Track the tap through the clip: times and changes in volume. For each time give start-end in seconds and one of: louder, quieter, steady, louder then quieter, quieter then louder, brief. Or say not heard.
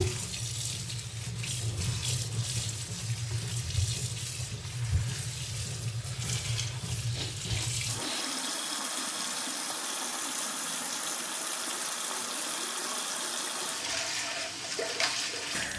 0.0-15.7 steady.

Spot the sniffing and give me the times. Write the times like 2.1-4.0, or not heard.
7.1-8.3.